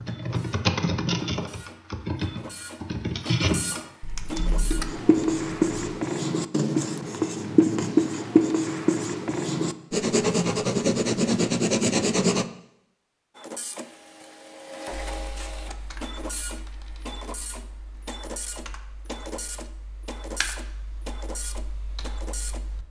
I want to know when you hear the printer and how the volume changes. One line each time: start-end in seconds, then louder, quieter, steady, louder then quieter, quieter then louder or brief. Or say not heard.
0.0-5.0 louder
13.3-22.6 steady.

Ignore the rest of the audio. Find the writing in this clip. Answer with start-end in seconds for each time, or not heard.
4.3-12.4.